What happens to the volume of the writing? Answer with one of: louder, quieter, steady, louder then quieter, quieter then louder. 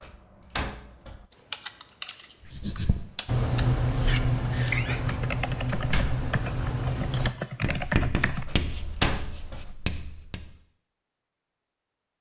quieter.